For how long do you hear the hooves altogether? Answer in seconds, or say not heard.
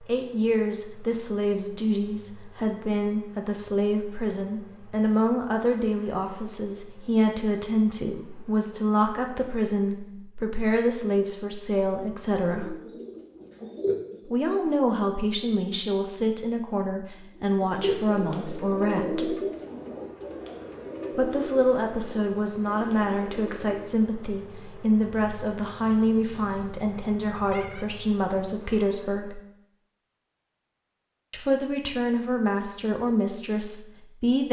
not heard.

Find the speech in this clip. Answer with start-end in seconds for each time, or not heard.
0.0-12.8, 14.2-19.4, 21.1-29.4, 31.3-34.4.